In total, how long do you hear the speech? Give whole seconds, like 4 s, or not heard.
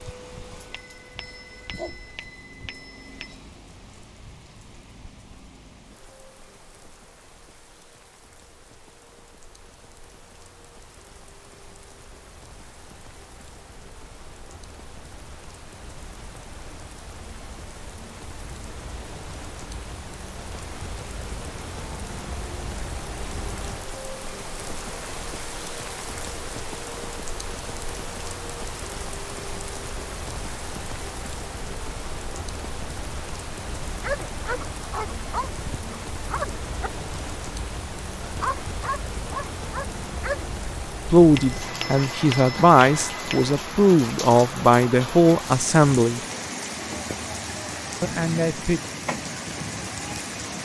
6 s.